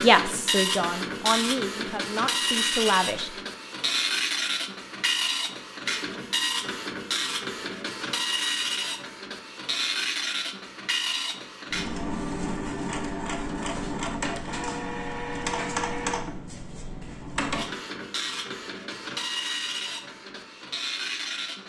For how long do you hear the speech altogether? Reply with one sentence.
The speech can be heard for 3 seconds in total.